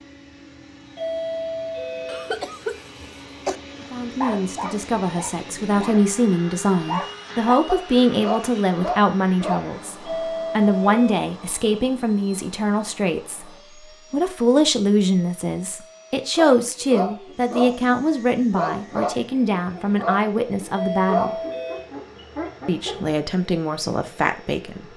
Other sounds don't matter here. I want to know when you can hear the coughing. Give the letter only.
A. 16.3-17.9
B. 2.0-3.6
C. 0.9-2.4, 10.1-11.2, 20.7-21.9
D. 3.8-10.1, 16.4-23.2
B.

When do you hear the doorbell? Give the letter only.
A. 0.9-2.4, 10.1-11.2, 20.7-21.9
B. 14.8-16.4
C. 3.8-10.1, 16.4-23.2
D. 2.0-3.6
A.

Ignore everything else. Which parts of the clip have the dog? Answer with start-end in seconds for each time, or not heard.
3.8-10.1, 16.4-23.2.